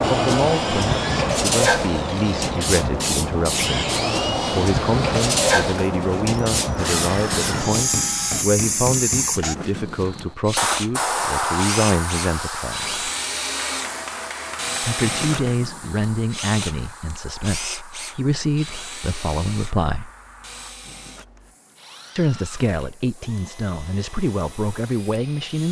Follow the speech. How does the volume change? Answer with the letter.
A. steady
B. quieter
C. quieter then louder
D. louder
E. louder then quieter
A.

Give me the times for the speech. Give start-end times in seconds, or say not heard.
0.1-12.9, 14.8-20.1, 22.1-25.6.